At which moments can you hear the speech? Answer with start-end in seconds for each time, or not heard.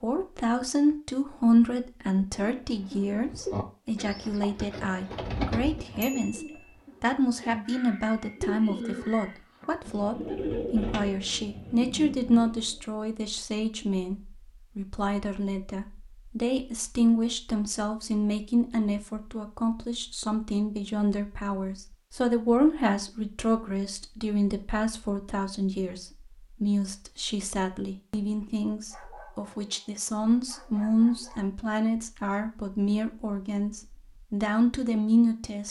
0.0-6.4, 7.0-35.6.